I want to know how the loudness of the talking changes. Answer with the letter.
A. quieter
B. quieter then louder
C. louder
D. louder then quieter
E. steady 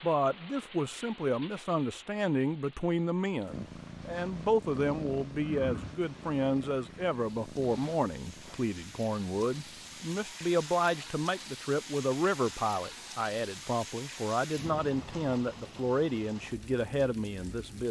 E.